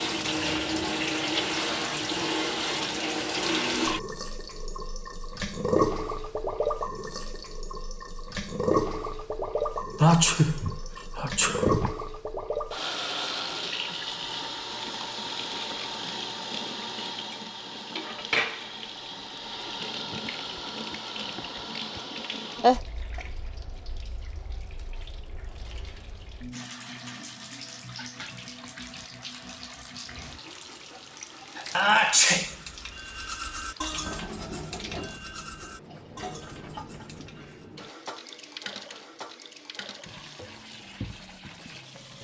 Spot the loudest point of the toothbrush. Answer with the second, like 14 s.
34 s.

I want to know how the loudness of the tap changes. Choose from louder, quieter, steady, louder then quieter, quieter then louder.
quieter.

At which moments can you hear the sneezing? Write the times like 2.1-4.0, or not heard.
10.0-11.9, 22.6-23.2, 31.6-32.5.